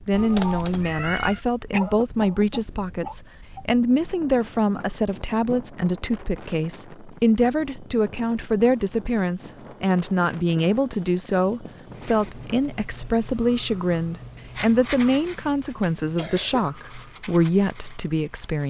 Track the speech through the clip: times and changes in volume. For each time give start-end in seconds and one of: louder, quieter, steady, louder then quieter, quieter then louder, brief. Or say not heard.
0.0-18.6 steady.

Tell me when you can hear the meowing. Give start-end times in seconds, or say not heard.
0.1-1.4.